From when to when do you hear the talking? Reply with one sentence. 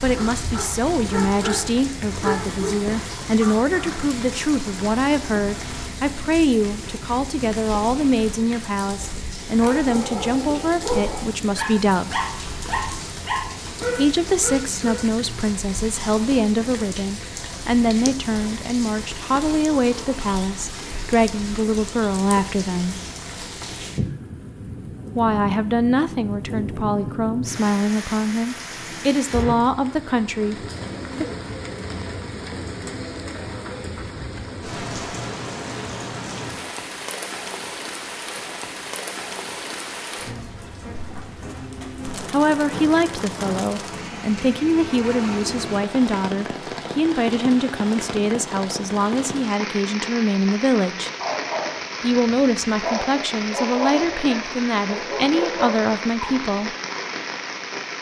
You can hear the talking from 0.0 to 12.2 s, from 13.9 to 23.0 s, from 25.1 to 31.2 s, from 42.3 to 51.1 s and from 52.0 to 56.8 s.